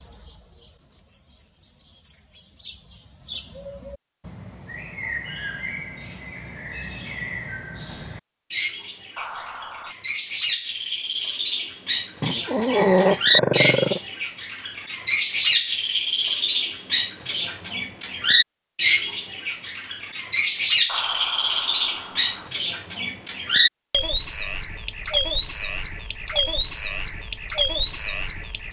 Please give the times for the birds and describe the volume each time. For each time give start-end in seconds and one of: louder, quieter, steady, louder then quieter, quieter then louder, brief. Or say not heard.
0.0-28.6 louder.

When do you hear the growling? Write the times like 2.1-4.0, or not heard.
12.2-14.0.